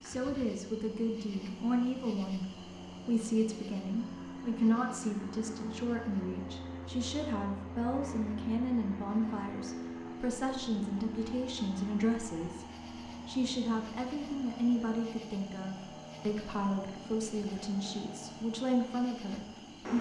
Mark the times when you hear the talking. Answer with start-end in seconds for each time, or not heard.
0.0-12.7, 13.2-19.9.